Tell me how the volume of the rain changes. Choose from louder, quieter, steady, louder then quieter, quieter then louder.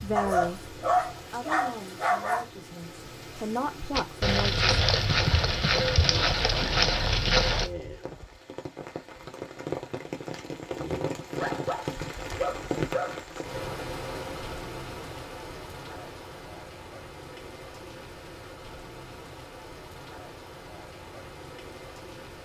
louder then quieter.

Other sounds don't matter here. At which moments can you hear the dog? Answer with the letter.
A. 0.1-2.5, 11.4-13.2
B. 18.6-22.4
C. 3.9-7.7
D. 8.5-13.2
A.